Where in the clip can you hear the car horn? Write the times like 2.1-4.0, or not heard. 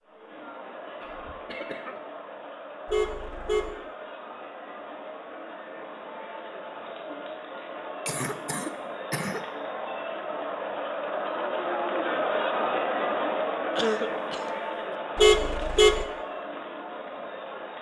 2.9-3.8, 15.2-16.1.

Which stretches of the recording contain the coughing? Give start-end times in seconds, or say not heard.
1.0-2.0, 8.1-9.4, 13.8-14.9.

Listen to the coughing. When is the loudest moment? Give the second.
14 s.